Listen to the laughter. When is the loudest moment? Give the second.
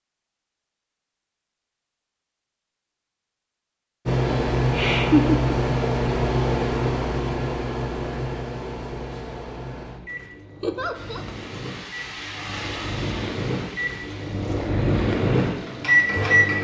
5 s.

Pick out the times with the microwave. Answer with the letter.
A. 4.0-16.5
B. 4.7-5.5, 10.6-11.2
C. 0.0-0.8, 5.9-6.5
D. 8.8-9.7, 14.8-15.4
A.